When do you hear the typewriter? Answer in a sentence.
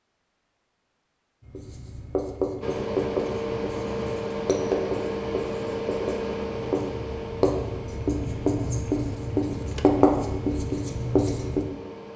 The typewriter can't be heard in this clip.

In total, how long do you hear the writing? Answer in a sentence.
You can hear the writing for 10 seconds altogether.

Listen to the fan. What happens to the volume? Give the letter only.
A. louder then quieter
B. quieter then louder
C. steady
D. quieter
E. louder
D.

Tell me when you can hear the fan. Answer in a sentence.
The fan can be heard from 2.6 to 12.1 s.